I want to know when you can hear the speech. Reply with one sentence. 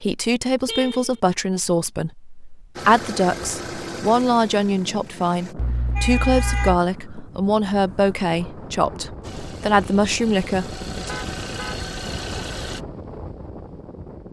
You can hear the speech from 0.0 to 11.2 s.